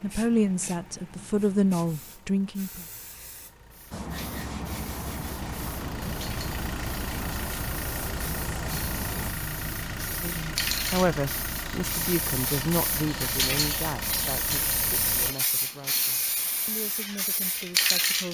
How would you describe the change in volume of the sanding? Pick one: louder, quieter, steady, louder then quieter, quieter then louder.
steady.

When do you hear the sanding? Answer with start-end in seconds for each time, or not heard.
3.9-9.3.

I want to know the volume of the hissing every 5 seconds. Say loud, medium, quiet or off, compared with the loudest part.
quiet, quiet, loud, loud.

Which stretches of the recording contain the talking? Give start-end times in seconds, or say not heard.
0.0-2.9, 10.1-18.2.